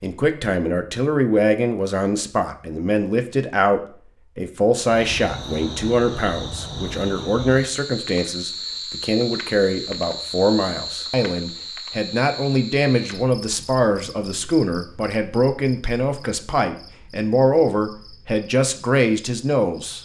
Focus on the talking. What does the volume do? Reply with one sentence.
The loudness of the talking stays about the same.